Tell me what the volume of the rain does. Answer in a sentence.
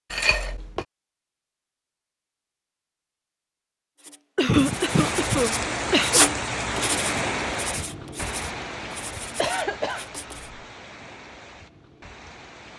The loudness of the rain goes down.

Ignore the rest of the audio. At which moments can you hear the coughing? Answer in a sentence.
The coughing can be heard from 0.1 to 0.8 s, from 4.3 to 6.2 s and from 9.3 to 10.6 s.